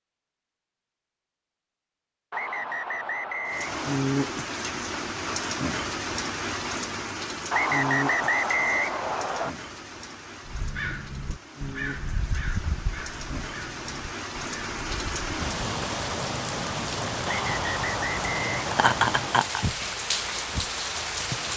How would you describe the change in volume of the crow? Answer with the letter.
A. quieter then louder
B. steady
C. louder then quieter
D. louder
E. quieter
E.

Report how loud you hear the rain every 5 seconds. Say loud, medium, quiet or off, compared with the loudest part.
loud, loud, medium, loud, loud.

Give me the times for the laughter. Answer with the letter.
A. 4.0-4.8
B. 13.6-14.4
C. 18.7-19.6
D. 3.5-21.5
C.